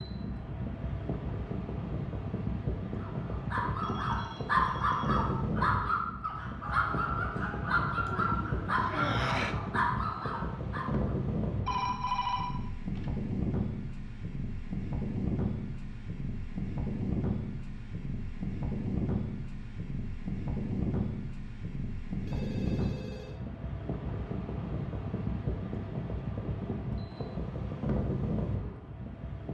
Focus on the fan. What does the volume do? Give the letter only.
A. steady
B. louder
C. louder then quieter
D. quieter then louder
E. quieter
A.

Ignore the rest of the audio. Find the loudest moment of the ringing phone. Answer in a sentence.
The loudest moment of the ringing phone is at 12 seconds.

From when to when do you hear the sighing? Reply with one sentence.
The sighing can be heard from 8.1 to 9.6 s.